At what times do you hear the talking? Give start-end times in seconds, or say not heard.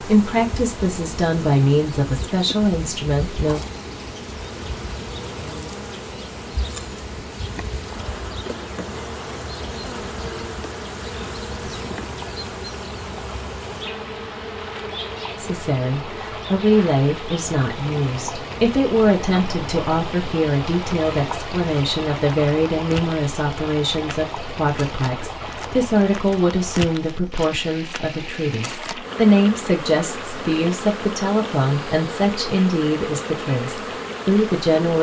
0.0-3.6, 15.4-34.9.